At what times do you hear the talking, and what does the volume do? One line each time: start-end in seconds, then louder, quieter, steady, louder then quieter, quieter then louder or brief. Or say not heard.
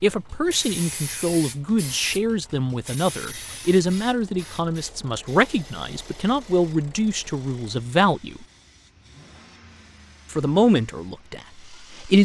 0.0-8.4 steady
10.3-12.2 brief.